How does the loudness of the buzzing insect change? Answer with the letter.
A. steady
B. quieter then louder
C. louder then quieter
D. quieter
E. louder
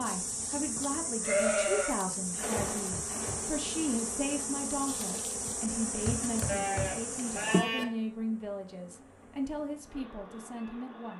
D.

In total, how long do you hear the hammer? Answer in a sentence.
The hammer can be heard for 2 seconds in total.